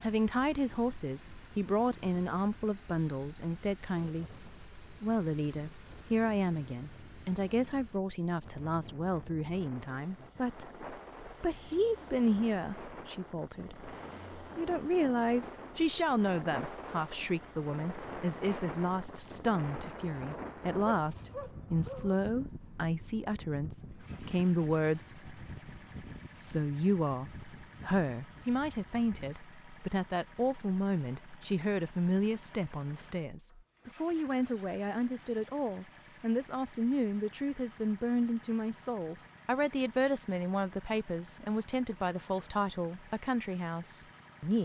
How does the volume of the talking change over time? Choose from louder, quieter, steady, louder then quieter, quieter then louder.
steady.